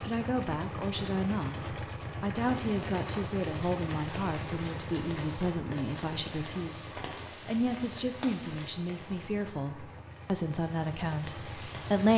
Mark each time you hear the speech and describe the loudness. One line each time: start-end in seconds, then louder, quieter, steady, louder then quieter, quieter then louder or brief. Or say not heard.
0.0-12.1 steady.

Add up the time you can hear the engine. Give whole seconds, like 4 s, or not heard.
12 s.